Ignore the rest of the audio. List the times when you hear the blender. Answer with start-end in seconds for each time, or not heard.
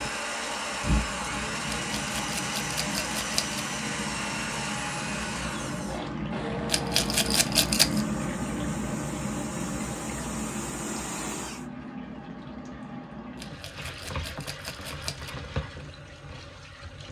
0.0-11.7.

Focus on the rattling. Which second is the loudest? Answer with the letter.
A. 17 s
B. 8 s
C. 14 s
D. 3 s
B.